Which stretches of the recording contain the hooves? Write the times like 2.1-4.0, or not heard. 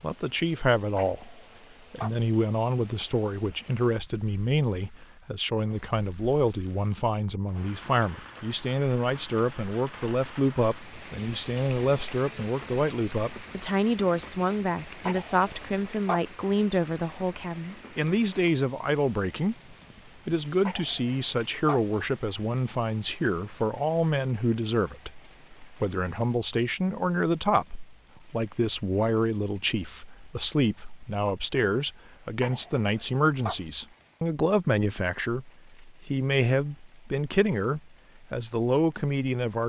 not heard.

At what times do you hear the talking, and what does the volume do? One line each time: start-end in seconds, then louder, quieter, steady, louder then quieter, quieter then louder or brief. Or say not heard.
0.0-39.6 steady.